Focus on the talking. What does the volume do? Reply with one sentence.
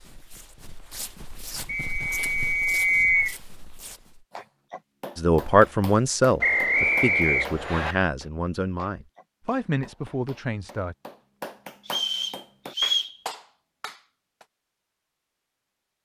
The volume of the talking goes down.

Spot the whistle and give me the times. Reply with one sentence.
The whistle can be heard from 1.6 to 3.4 s, from 6.4 to 8.0 s and from 11.8 to 13.2 s.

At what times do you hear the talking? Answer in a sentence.
You can hear the talking from 5.2 to 10.9 s.